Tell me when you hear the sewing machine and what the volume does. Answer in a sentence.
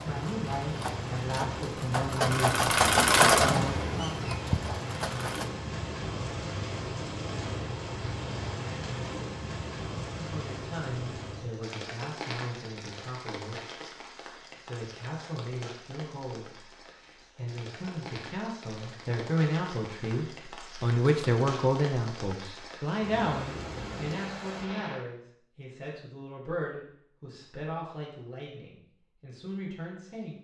The sewing machine can be heard from 0.0 to 5.5 s, getting louder then quieter.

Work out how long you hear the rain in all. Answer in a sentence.
The rain can be heard for 25 seconds in total.